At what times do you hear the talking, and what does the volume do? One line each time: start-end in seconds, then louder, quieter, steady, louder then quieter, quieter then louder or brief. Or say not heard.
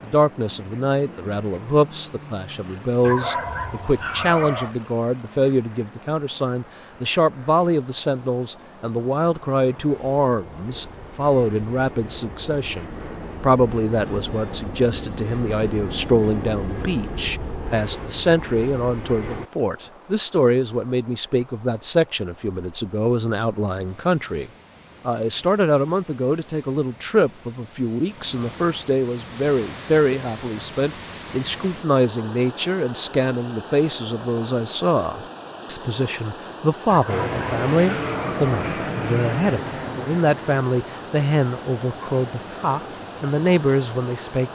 0.0-44.5 steady.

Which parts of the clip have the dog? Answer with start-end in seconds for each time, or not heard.
3.0-4.8, 36.9-38.9.